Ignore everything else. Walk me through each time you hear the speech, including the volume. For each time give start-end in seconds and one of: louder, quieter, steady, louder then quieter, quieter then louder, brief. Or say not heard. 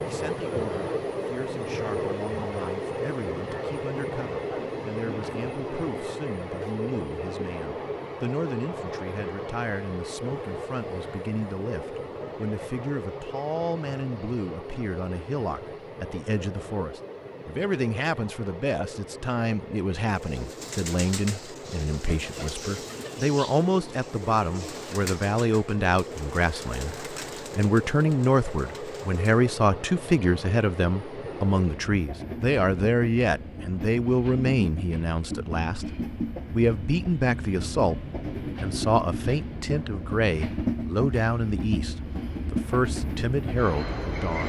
0.1-44.4 louder.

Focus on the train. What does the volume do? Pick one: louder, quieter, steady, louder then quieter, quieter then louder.
quieter then louder.